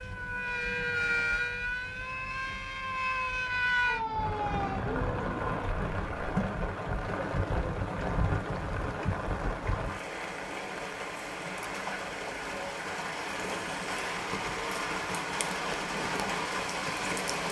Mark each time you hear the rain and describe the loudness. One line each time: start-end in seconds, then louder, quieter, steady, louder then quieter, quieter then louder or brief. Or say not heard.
0.0-17.4 louder.